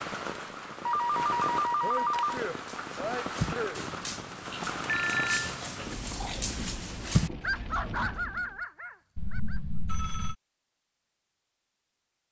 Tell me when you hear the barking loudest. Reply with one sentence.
The volume of the barking peaks at 7 seconds.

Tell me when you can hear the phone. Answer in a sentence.
The phone can be heard from 0.8 to 2.4 s, from 4.8 to 5.6 s and from 9.2 to 10.3 s.